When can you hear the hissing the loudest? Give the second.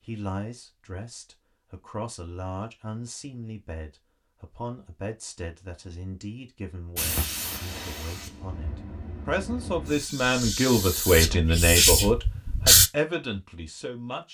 12 s.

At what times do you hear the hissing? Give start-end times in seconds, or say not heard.
7.0-12.9.